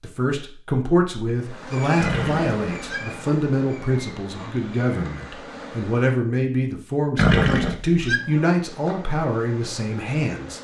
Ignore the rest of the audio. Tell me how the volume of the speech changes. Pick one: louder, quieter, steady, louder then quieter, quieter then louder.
steady.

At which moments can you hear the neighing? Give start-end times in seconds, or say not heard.
1.9-3.0, 7.2-8.2.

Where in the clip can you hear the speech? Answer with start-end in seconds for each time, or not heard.
0.0-10.5.